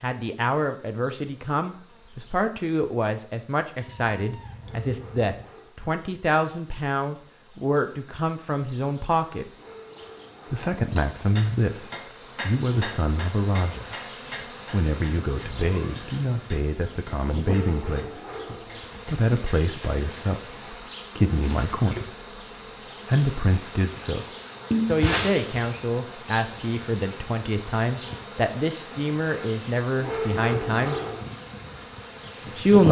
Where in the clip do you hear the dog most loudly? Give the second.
30 s.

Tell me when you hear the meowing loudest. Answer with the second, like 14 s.
25 s.